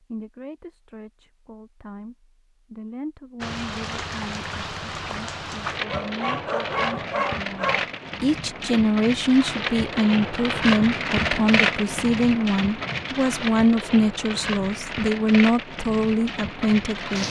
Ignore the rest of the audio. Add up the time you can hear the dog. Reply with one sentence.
You can hear the dog for 2 seconds altogether.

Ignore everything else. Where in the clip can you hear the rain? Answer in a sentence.
You can hear the rain from 3.4 to 17.2 s.